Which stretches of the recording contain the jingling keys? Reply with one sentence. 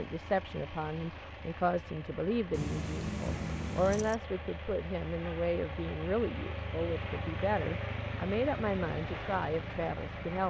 The jingling keys can be heard from 2.5 to 4.2 s.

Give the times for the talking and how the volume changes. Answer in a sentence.
The talking can be heard from 0.0 to 10.4 s, at a steady volume.